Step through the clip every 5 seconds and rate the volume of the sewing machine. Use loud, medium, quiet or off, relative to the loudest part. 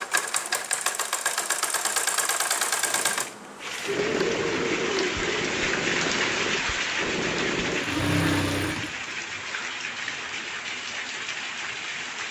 loud, loud, off.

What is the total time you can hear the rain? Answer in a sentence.
You can hear the rain for 9 seconds altogether.